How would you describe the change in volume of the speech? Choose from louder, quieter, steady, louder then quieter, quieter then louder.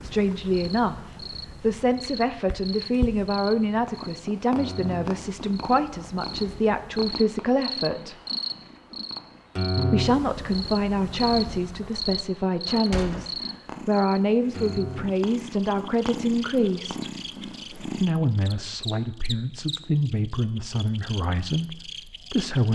steady.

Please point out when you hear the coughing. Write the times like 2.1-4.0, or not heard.
not heard.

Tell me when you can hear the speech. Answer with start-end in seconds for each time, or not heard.
0.0-8.2, 9.8-17.1, 17.9-22.7.